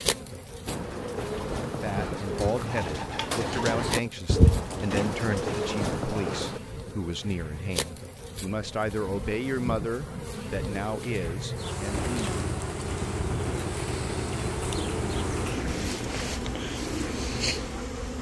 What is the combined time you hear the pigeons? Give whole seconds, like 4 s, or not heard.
12 s.